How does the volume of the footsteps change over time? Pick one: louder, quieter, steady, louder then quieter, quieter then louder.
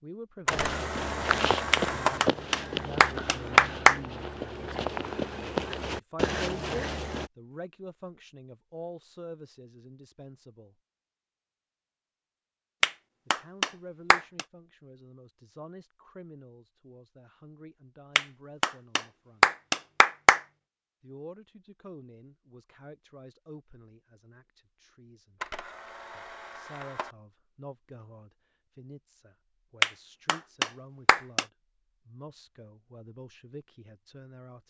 quieter then louder.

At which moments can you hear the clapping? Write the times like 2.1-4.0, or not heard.
1.7-4.0, 12.8-14.4, 18.1-20.4, 29.8-31.4.